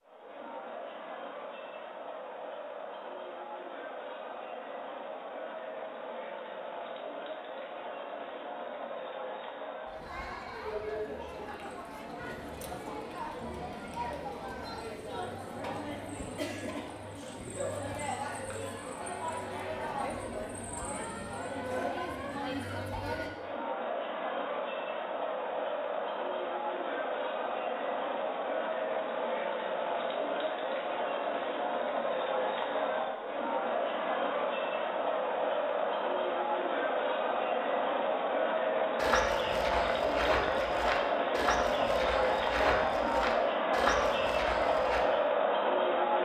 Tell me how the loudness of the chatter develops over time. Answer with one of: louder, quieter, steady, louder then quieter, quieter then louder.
louder.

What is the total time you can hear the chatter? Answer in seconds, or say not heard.
46 s.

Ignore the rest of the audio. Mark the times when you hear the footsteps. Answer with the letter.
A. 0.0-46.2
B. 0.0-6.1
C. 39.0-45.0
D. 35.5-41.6
C.